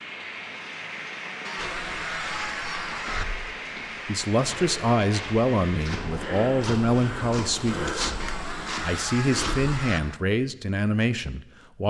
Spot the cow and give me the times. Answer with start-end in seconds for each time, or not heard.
not heard.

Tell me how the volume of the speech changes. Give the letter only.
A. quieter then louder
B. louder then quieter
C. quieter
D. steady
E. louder
D.